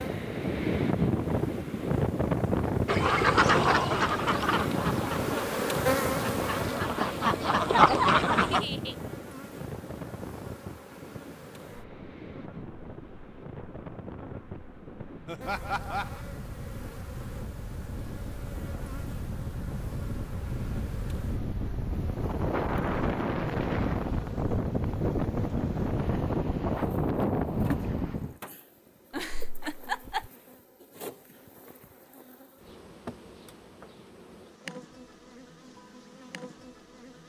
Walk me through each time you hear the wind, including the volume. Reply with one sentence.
You can hear the wind from 0.0 to 28.4 s, getting quieter then louder.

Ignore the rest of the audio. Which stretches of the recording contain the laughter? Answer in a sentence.
You can hear the laughter from 8.4 to 8.9 s, from 15.2 to 16.2 s and from 29.1 to 30.3 s.